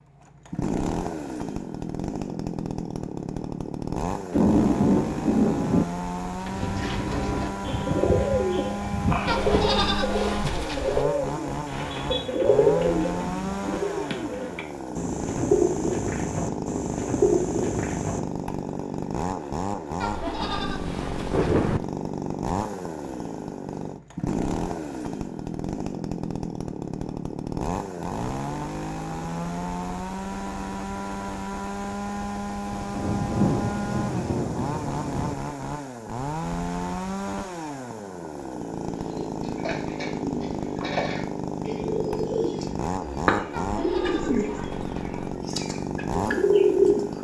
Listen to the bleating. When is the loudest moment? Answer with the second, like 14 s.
10 s.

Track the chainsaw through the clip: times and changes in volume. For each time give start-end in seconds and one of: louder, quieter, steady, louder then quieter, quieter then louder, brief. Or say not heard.
0.1-47.1 steady.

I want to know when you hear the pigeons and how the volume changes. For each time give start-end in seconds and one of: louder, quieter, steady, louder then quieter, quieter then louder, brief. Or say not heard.
6.4-18.2 steady
39.0-47.1 louder.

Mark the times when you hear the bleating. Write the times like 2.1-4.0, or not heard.
9.2-11.1, 20.0-21.6, 43.5-45.3.